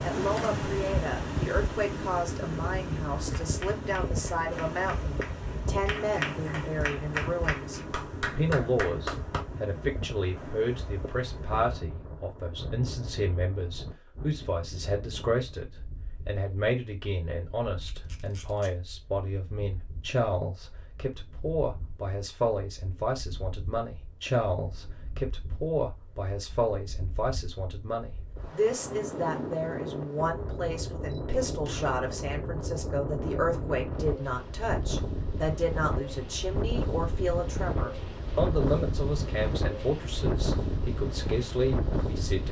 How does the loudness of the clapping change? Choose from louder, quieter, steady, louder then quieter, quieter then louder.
louder.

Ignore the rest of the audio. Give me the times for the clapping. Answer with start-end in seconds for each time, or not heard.
3.2-9.4.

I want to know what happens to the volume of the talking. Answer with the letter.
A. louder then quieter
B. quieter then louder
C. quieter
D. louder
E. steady
E.